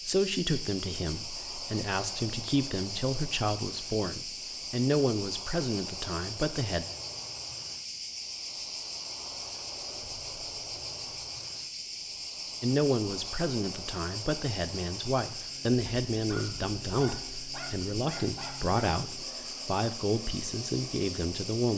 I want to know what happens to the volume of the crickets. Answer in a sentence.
The volume of the crickets stays about the same.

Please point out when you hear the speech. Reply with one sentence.
The speech can be heard from 0.1 to 6.8 s and from 12.6 to 21.7 s.